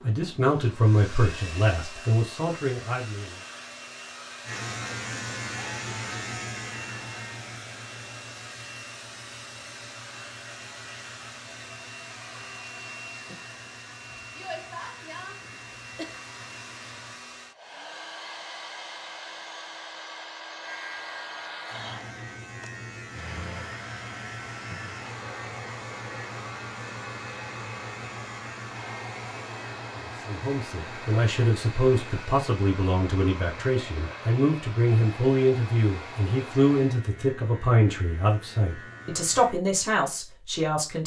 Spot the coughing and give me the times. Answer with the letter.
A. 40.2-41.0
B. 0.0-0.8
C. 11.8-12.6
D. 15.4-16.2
D.